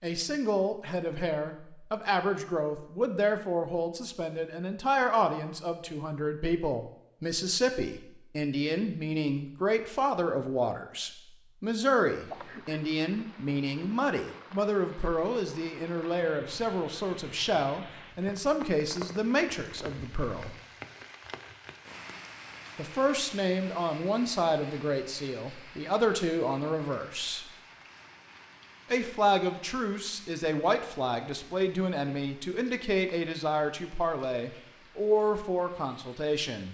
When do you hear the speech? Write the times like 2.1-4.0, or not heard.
0.0-20.6, 22.8-27.5, 28.9-36.6.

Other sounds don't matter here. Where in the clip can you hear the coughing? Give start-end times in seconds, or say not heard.
12.2-12.8.